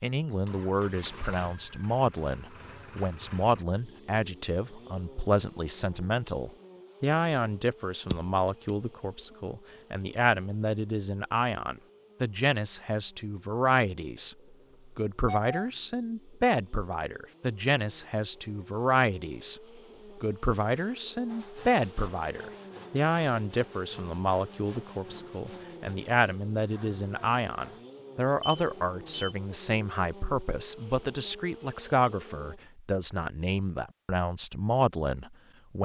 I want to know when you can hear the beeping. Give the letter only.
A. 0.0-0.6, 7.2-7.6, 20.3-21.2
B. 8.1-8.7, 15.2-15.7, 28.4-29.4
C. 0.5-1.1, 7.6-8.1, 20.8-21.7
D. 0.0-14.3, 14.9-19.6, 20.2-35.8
B.